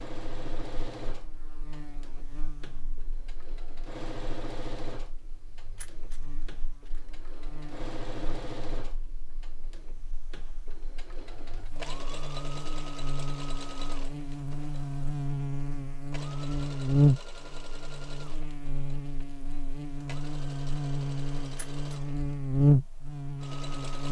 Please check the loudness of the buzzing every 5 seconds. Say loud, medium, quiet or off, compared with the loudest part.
quiet, quiet, quiet, loud, loud.